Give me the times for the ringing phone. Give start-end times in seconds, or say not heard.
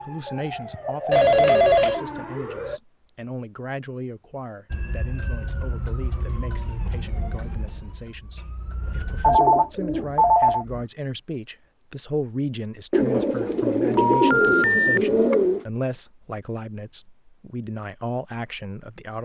1.1-2.0, 9.2-10.7, 13.9-15.0.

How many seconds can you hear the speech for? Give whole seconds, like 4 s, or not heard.
19 s.